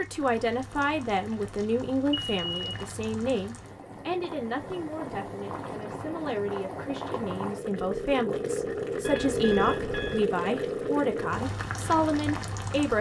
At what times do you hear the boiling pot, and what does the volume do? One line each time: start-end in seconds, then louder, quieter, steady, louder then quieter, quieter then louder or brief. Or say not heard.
0.0-12.9 louder.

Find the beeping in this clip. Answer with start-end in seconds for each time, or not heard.
2.1-2.8, 9.0-10.2.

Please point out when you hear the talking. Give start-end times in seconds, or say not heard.
0.0-12.9.